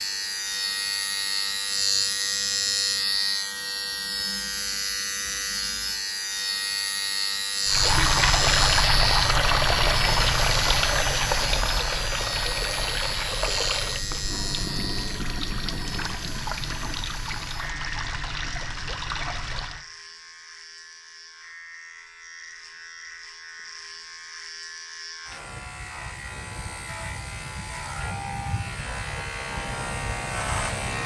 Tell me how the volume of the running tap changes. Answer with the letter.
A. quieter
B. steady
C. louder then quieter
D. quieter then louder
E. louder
A.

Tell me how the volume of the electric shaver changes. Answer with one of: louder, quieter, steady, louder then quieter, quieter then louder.
quieter then louder.